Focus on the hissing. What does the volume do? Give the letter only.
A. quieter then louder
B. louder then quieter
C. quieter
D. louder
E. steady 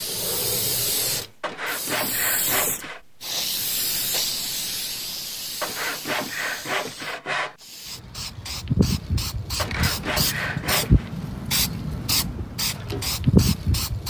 A.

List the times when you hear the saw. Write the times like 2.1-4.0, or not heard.
1.4-3.0, 5.6-7.5, 9.6-11.1.